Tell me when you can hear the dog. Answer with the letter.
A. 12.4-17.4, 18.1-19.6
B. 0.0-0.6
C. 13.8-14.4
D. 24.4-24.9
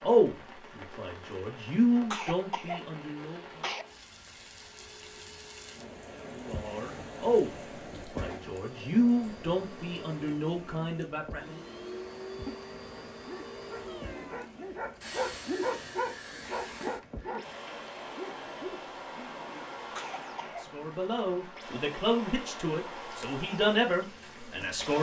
A.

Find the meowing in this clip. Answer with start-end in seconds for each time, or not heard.
13.8-14.4.